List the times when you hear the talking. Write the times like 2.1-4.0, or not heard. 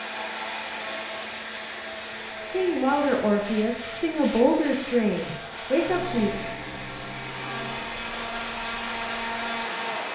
2.4-6.3.